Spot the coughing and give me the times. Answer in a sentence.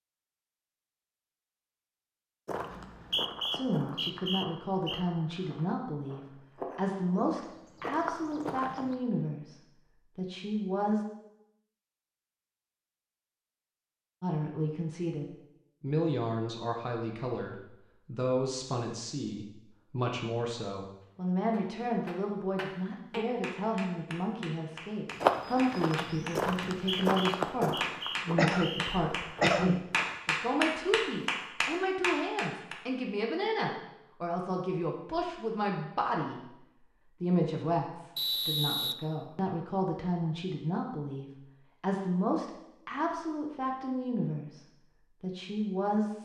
You can hear the coughing from 28.4 to 29.8 s.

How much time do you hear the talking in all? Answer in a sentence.
You can hear the talking for 38 seconds altogether.